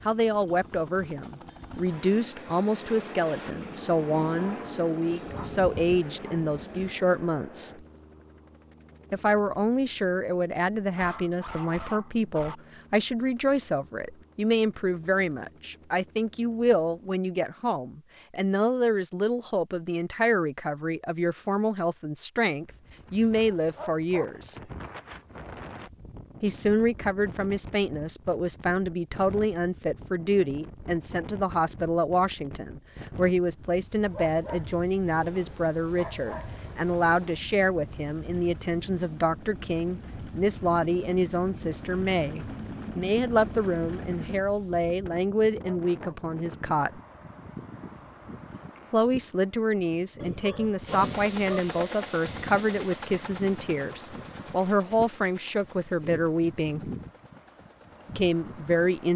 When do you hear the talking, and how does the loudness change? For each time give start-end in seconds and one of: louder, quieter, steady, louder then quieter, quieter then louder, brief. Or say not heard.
0.1-7.8 steady
9.1-24.6 steady
26.4-47.0 steady
48.9-56.9 steady
58.1-59.1 brief.